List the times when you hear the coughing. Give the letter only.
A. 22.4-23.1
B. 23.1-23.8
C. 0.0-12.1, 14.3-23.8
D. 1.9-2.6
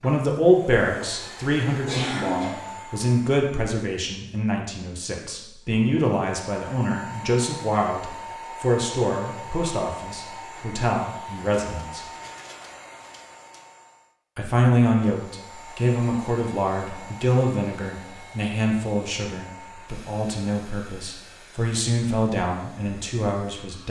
D.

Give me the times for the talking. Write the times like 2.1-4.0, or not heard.
0.0-12.1, 14.3-23.8.